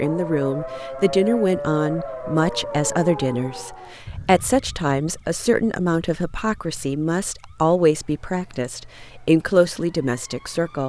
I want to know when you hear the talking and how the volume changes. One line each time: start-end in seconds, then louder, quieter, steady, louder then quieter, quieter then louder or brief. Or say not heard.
0.0-10.8 steady.